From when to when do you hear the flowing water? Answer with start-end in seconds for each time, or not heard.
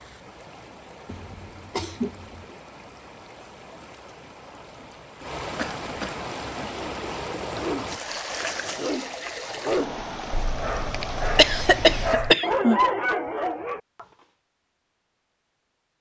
0.0-12.2.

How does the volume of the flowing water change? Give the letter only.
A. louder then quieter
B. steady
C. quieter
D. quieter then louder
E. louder
E.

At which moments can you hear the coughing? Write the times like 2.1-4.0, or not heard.
1.1-2.5, 5.5-6.2, 11.3-12.8.